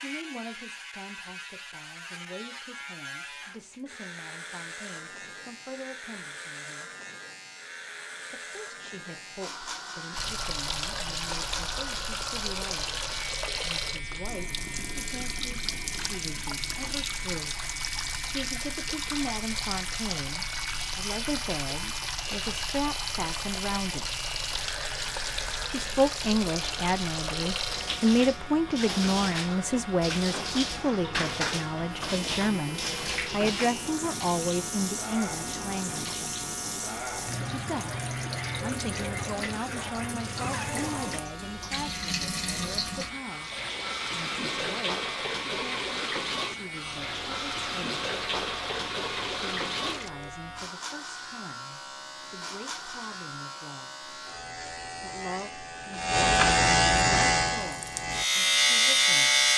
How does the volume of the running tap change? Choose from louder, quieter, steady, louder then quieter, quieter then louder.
steady.